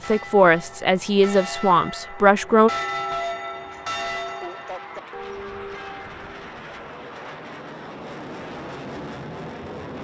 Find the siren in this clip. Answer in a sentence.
You can't hear the siren here.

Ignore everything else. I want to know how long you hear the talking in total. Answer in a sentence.
You can hear the talking for 3 seconds altogether.